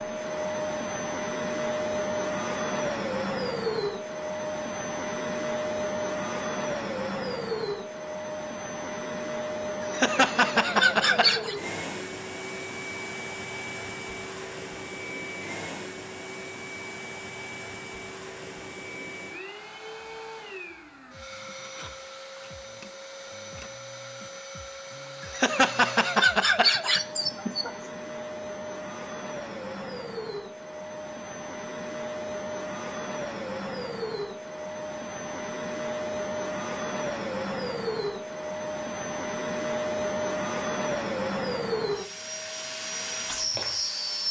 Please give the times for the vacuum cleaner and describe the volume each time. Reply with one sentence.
The vacuum cleaner can be heard from 0.0 to 44.2 s, getting quieter then louder.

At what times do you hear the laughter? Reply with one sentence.
The laughter can be heard from 9.8 to 11.6 s and from 25.2 to 27.7 s.